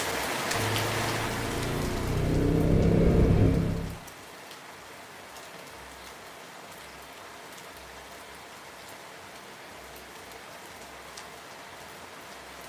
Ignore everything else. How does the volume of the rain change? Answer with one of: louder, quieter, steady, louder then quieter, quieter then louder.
quieter.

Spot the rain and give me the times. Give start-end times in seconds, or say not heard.
0.0-12.6.